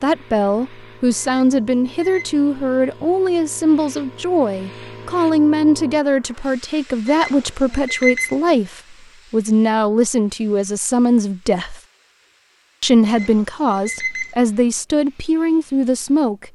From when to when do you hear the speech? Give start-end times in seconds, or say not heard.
0.0-11.8, 12.8-16.5.